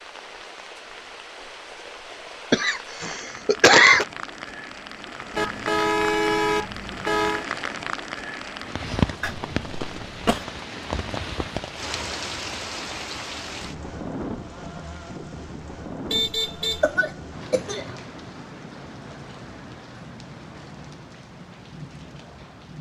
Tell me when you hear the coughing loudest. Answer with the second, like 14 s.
4 s.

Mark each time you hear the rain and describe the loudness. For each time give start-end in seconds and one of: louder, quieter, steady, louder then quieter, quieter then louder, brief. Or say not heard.
0.0-22.7 louder then quieter.